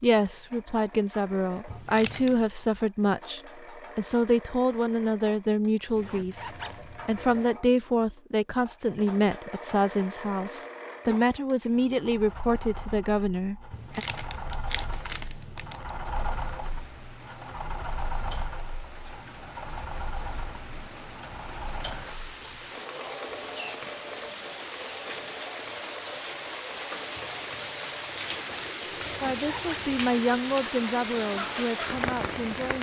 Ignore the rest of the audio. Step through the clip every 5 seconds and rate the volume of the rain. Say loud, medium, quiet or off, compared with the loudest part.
off, off, off, quiet, medium, loud, loud.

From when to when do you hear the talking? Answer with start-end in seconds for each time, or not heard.
0.0-14.1, 29.2-32.7.